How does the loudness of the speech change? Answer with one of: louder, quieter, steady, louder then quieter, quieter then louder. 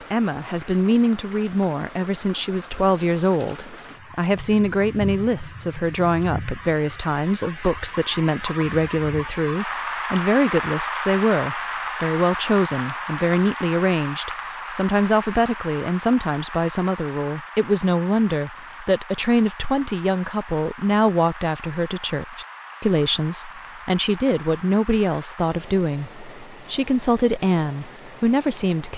steady.